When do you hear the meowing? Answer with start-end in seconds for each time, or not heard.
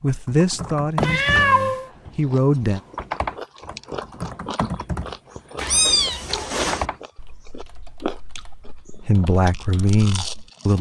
1.0-1.9, 5.5-6.8.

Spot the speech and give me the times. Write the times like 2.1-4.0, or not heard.
0.0-2.8, 9.1-10.7.